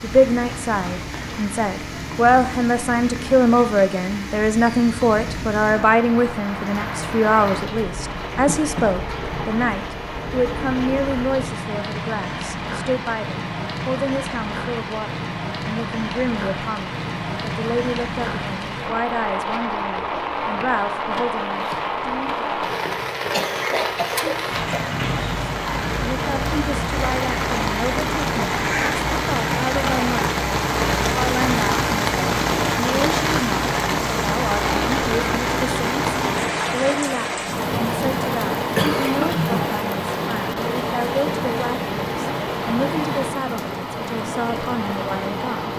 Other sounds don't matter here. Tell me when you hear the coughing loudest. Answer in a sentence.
The loudest moment of the coughing is at 39 seconds.